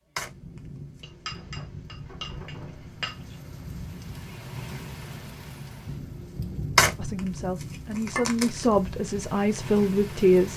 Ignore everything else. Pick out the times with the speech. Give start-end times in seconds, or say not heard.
7.0-10.5.